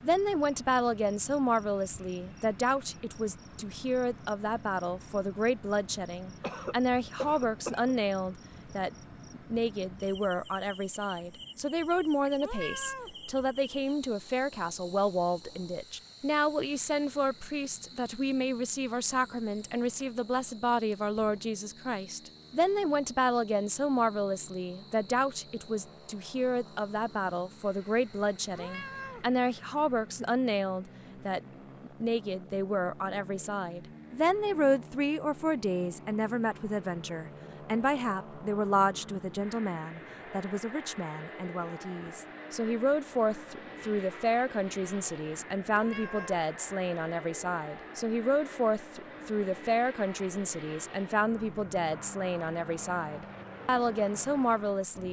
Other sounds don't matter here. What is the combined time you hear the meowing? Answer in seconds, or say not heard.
2 s.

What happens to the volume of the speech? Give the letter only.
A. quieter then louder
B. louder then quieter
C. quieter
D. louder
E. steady
E.